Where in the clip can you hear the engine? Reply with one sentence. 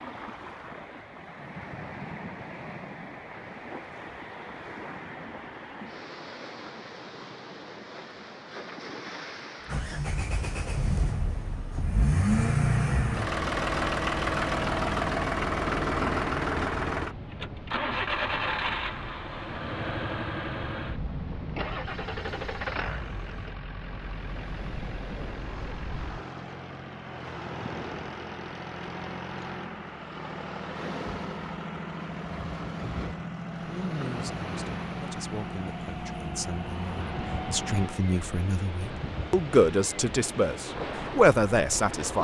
The engine can be heard from 9.7 to 38.0 s.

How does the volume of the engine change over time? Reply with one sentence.
The volume of the engine goes down.